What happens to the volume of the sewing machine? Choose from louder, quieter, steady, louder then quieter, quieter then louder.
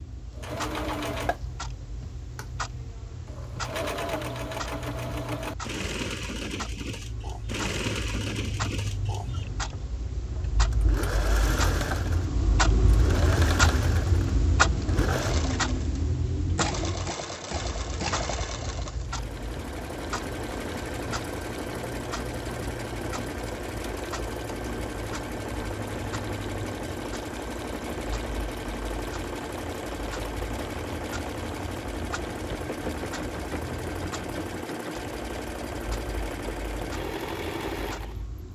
steady.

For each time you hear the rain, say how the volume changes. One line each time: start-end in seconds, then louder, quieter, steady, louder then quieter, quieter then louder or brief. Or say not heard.
not heard.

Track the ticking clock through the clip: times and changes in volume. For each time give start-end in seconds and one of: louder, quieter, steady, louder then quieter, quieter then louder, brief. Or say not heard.
0.0-38.5 louder then quieter.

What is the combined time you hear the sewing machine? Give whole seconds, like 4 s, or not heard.
38 s.